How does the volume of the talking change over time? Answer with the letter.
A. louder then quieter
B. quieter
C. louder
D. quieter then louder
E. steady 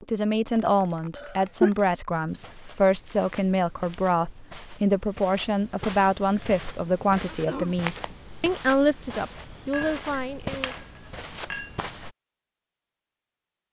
E.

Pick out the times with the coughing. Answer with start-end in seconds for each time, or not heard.
1.1-1.7, 7.2-7.9.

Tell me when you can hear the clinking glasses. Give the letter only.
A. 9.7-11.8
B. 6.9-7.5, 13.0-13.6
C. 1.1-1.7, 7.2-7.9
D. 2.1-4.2
A.